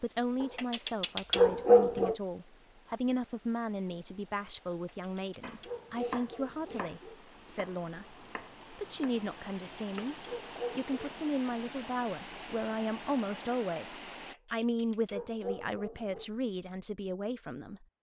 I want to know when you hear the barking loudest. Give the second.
2 s.